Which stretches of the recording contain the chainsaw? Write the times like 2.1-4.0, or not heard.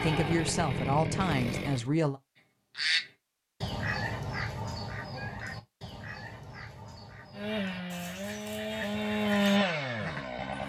0.0-1.9, 7.3-10.6.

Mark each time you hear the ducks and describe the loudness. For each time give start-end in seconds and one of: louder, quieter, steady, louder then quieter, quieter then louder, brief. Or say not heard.
2.8-10.2 quieter then louder.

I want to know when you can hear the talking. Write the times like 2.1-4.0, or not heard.
0.0-2.2.